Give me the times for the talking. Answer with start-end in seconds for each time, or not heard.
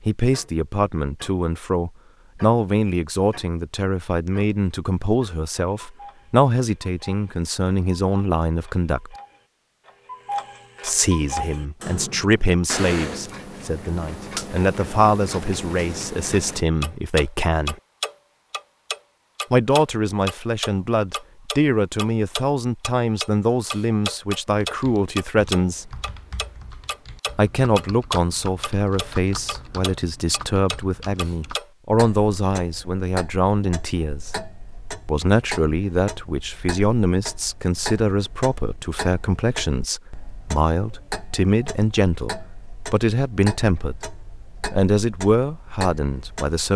0.0-9.2, 10.8-17.8, 19.5-26.0, 27.4-34.4, 35.0-44.1, 44.7-46.7.